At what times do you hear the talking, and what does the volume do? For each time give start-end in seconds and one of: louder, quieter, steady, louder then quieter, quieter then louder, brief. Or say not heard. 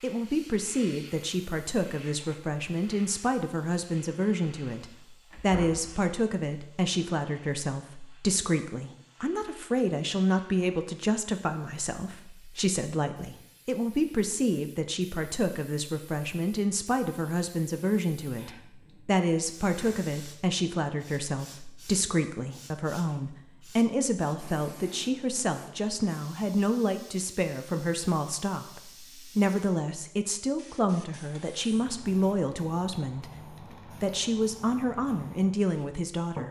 0.0-36.4 steady.